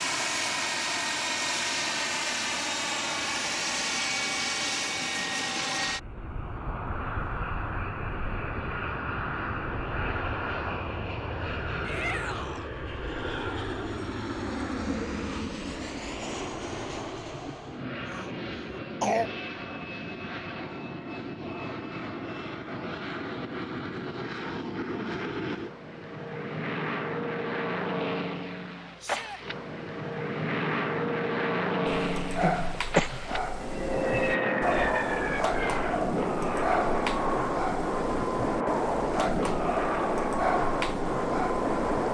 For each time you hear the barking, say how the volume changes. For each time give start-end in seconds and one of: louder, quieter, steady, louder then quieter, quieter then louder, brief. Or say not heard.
31.9-42.1 steady.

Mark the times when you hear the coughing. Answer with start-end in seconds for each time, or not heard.
17.4-19.3, 32.4-33.1.